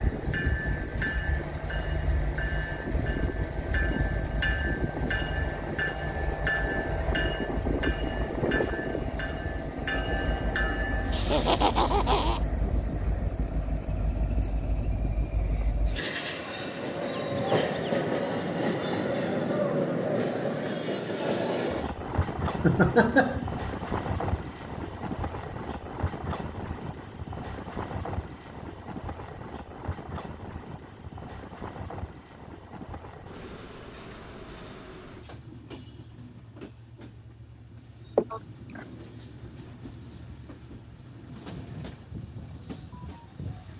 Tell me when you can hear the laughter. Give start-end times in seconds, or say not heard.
11.1-12.4, 22.2-23.4, 38.1-38.8.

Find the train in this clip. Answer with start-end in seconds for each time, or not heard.
0.0-43.7.